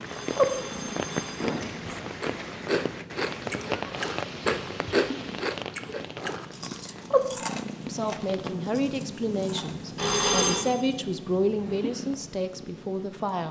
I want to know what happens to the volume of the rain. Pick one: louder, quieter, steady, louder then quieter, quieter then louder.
quieter.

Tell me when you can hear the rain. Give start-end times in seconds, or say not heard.
0.0-8.6.